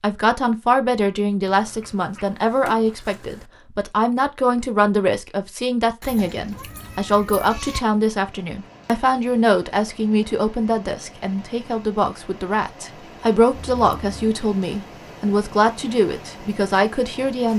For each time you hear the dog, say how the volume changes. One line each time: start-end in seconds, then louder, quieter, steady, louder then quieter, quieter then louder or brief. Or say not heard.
not heard.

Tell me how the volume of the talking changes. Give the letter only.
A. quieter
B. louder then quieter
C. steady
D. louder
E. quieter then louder
C.